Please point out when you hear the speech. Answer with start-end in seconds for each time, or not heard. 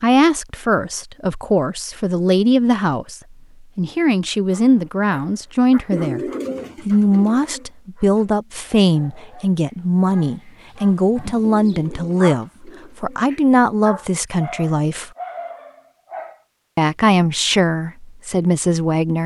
0.0-6.2, 6.8-15.1, 16.8-19.2.